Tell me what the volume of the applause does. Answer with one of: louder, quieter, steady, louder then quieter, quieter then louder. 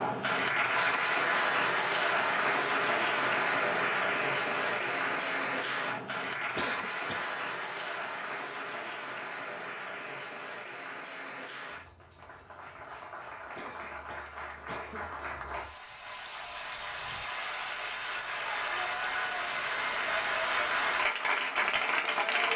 quieter then louder.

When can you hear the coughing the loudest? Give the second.
7 s.